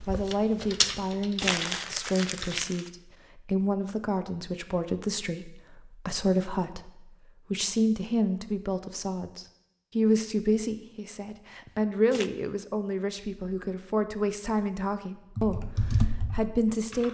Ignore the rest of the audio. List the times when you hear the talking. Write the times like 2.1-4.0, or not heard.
0.0-17.0.